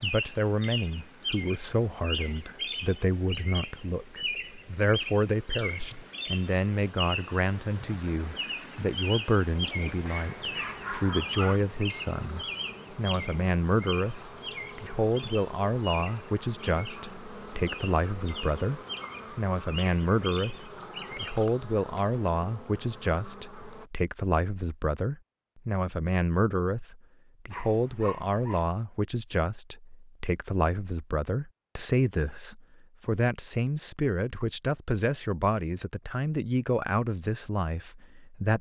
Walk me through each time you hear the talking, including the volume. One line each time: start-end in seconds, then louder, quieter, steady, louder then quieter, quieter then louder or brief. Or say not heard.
0.0-38.5 steady.